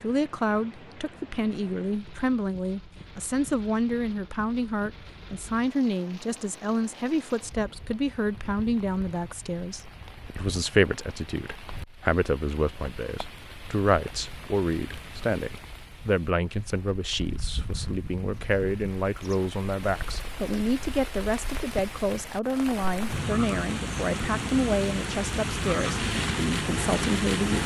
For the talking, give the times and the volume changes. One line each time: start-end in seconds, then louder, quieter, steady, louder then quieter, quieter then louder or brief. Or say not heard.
0.0-27.6 steady.